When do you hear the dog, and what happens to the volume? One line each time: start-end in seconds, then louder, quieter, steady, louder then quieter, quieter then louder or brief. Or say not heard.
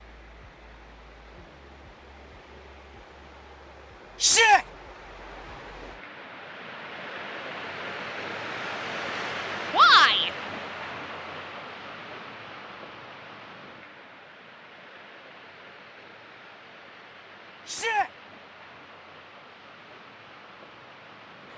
not heard.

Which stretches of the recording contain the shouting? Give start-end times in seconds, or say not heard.
4.2-4.7, 9.7-10.3, 17.6-18.1.